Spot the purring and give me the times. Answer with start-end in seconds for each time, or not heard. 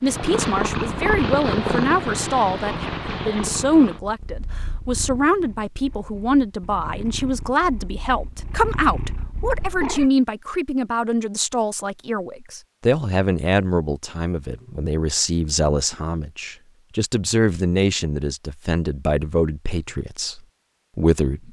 0.0-10.1.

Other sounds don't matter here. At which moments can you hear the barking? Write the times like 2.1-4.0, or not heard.
not heard.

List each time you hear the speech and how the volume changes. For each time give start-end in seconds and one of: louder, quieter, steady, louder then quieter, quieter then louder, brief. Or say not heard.
0.0-21.4 steady.